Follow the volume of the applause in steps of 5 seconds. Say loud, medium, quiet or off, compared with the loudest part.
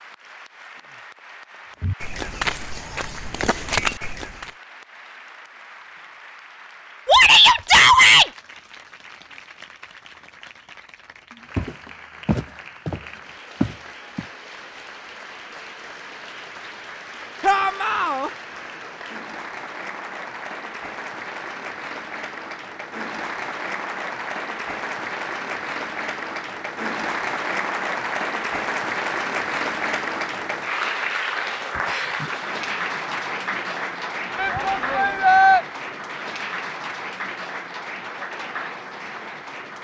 quiet, quiet, quiet, medium, medium, loud, loud, medium.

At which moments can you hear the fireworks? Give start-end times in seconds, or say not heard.
not heard.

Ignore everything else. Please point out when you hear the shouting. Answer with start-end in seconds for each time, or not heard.
7.0-8.3, 17.4-18.3, 34.4-35.6.